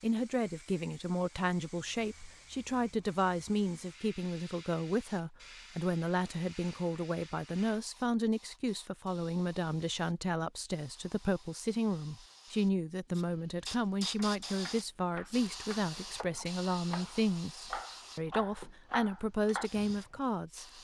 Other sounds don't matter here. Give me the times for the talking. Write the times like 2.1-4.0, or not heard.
0.0-20.6.